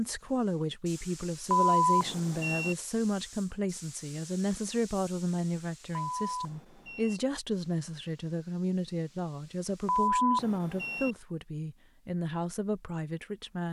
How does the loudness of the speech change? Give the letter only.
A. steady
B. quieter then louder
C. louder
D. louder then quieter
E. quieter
A.